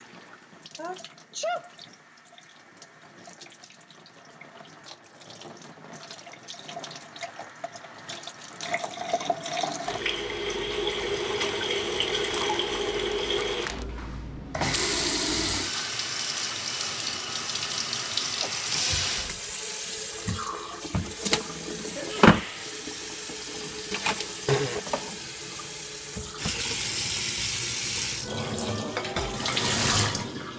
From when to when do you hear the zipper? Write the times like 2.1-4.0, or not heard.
not heard.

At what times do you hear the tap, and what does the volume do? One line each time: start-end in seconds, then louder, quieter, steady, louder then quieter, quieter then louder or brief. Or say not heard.
0.0-30.5 louder.